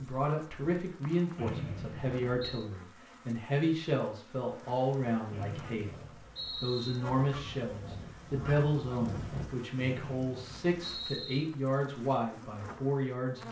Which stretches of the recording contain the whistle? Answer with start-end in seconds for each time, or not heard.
1.4-2.6, 5.3-7.0, 9.8-11.4.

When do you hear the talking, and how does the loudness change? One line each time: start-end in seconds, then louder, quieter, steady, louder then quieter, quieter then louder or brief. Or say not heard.
0.0-13.4 steady.